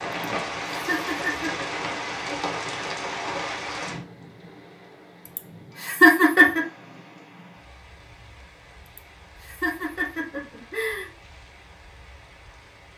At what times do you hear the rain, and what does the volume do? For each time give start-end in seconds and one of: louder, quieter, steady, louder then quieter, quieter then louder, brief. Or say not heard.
0.0-12.9 quieter.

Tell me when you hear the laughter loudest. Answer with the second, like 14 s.
6 s.